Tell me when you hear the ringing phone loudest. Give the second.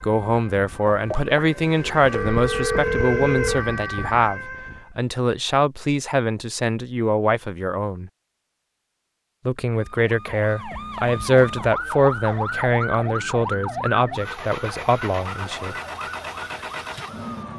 3 s.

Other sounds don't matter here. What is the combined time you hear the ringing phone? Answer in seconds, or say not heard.
3 s.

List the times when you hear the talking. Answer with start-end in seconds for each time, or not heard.
0.0-8.1, 9.4-15.8.